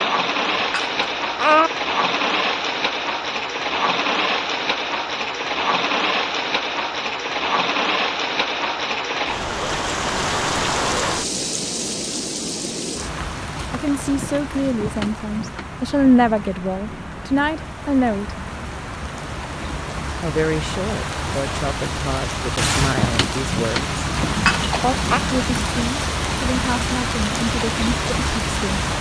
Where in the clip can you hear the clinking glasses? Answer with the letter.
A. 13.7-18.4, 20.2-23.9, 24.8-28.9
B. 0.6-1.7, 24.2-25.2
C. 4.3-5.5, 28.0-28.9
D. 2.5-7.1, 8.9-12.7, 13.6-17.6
B.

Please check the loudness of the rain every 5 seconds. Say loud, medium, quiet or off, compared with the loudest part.
loud, loud, loud, medium, loud, loud.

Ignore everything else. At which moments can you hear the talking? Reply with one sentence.
The talking can be heard from 13.7 to 18.4 s, from 20.2 to 23.9 s and from 24.8 to 28.9 s.